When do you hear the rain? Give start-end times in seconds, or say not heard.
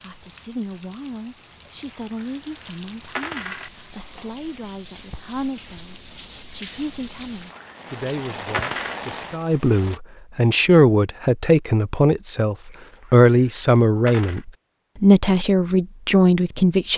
0.0-10.0.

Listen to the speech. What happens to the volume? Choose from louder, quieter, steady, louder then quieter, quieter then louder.
louder.